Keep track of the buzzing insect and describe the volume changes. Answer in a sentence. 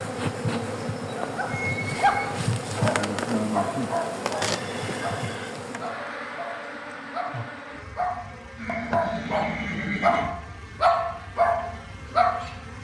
The loudness of the buzzing insect goes down.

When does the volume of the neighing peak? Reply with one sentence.
The loudest moment of the neighing is at 10 seconds.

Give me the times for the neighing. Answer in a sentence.
The neighing can be heard from 1.7 to 2.4 s, from 4.5 to 5.5 s and from 8.6 to 10.3 s.